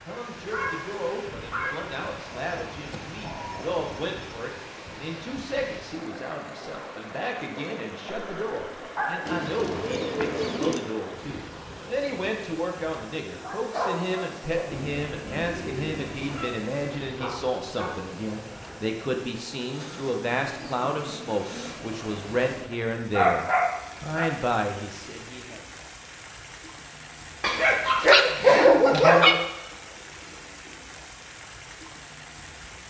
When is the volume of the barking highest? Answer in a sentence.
The volume of the barking peaks at 29 seconds.